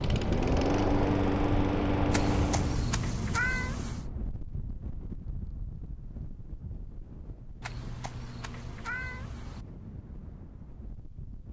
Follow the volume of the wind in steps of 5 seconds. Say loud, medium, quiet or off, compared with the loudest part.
loud, medium, quiet.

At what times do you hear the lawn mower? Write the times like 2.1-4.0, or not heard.
0.0-2.9.